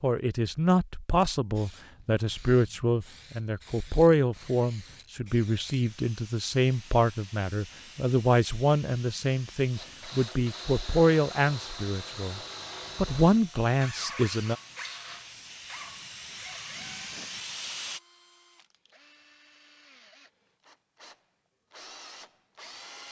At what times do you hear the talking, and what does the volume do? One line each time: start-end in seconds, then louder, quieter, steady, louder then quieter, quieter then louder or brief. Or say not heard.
0.0-14.6 steady.